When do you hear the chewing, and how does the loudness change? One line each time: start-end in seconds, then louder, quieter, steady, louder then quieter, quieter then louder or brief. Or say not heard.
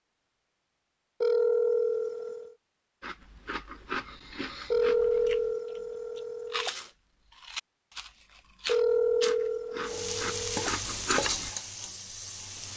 3.0-11.5 quieter then louder.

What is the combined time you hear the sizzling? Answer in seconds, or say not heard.
3 s.